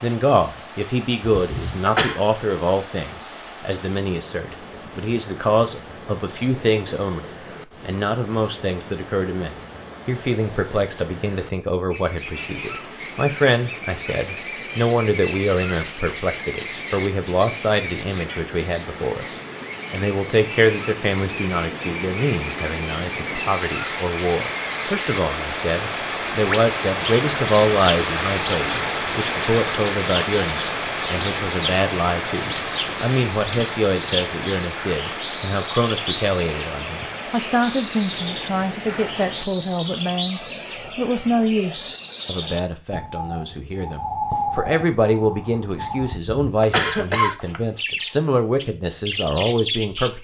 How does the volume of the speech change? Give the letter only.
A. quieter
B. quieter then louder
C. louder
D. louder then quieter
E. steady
E.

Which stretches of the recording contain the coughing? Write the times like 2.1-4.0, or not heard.
1.3-2.2, 46.0-47.6.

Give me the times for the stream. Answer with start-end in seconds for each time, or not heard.
0.0-39.5.